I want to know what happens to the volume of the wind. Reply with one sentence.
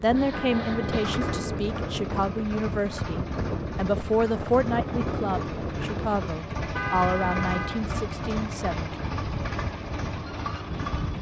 The volume of the wind goes down.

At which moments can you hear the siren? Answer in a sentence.
The siren can't be heard in this clip.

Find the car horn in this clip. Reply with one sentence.
You can hear the car horn from 0.3 to 1.6 s and from 6.8 to 7.8 s.